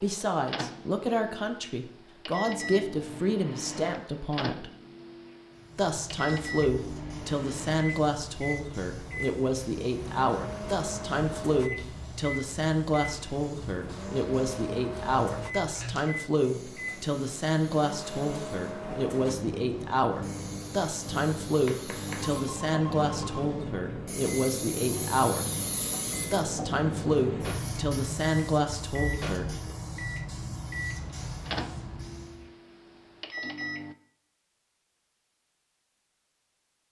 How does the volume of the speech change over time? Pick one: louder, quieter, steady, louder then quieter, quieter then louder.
steady.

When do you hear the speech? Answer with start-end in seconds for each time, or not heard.
0.0-4.7, 5.8-25.4, 26.3-29.8.